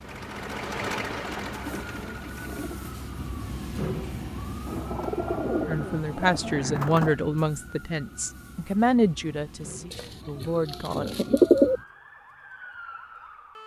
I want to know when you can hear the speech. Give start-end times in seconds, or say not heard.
5.7-11.1.